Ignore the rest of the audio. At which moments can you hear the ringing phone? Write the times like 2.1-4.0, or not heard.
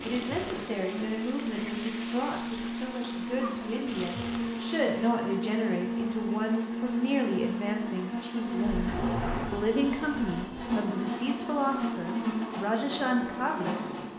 8.6-10.7.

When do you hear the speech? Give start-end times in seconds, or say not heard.
0.1-13.8.